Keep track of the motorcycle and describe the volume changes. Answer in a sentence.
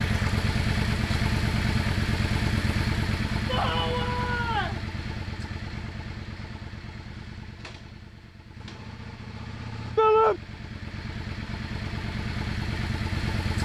The volume of the motorcycle goes down, then up.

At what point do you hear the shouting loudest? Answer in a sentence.
The loudest moment of the shouting is at 10 seconds.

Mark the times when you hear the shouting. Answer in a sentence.
The shouting can be heard from 3.5 to 4.8 s and from 9.9 to 10.4 s.